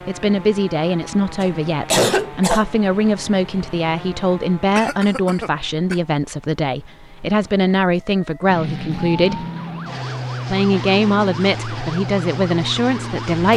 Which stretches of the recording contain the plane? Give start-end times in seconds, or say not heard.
8.4-13.5.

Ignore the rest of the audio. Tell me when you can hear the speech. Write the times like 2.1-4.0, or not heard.
0.1-9.4, 10.4-13.5.